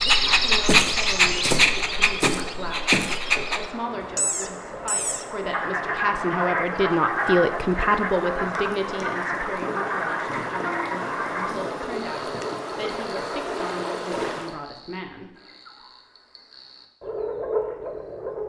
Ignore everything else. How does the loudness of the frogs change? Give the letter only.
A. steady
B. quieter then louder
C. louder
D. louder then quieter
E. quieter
E.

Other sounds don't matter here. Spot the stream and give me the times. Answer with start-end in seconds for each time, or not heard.
0.0-14.6.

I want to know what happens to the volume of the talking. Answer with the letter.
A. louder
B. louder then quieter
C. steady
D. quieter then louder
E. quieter
B.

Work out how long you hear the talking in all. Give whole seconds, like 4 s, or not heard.
15 s.